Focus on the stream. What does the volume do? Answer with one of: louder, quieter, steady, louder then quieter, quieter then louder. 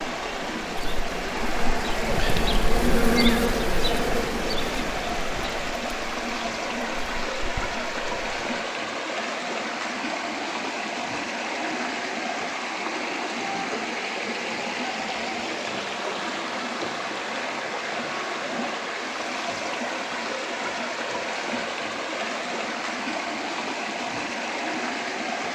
steady.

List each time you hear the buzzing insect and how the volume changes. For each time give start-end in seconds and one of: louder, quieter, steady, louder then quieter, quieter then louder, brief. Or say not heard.
0.1-8.6 louder then quieter.